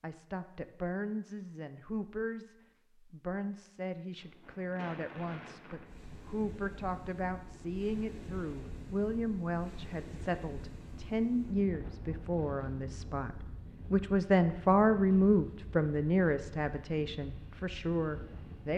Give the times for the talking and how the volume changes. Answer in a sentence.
You can hear the talking from 0.0 to 18.7 s, getting louder.